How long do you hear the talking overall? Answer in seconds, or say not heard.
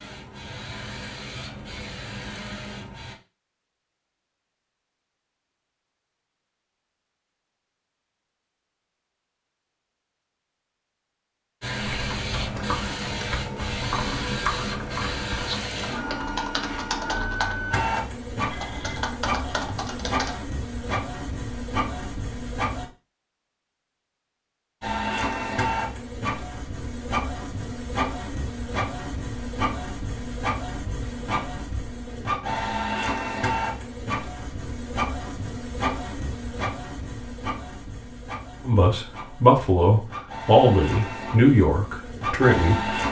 4 s.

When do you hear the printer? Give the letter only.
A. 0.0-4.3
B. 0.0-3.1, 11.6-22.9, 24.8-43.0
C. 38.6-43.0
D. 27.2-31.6
B.